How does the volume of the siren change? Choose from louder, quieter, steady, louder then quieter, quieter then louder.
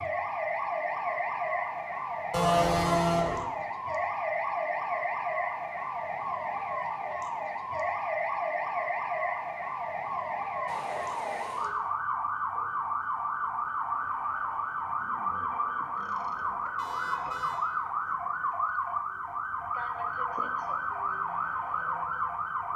steady.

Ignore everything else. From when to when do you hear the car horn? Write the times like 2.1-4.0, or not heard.
2.3-3.4, 10.7-11.7, 16.8-17.6.